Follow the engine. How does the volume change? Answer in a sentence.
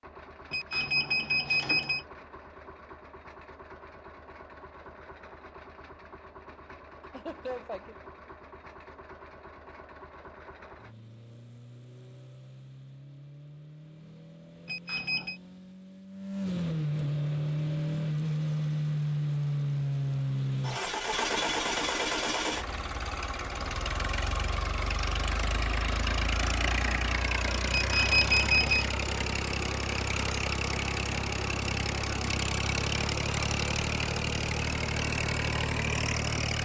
The loudness of the engine goes up.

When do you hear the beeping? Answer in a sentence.
The beeping can be heard from 0.5 to 2.0 s, from 14.7 to 15.4 s and from 27.7 to 28.9 s.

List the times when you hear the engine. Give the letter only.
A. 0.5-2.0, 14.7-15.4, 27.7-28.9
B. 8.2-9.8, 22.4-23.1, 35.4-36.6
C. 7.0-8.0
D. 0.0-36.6
D.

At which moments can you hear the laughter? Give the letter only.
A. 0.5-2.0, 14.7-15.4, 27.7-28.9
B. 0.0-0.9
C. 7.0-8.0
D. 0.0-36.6
C.